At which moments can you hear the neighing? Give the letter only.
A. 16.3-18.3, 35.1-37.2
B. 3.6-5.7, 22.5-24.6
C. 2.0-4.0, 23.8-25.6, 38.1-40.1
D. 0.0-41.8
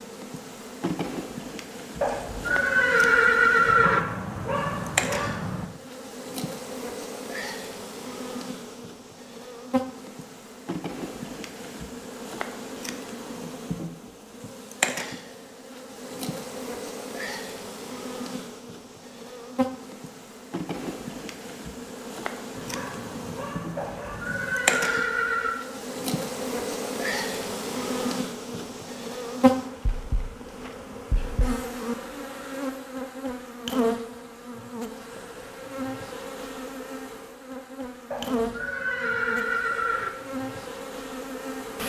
C.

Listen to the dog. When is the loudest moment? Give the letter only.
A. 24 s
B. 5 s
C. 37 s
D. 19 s
B.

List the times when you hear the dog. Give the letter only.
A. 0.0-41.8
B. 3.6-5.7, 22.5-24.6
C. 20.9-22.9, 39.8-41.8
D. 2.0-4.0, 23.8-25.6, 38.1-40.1
B.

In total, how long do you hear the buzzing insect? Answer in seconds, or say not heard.
42 s.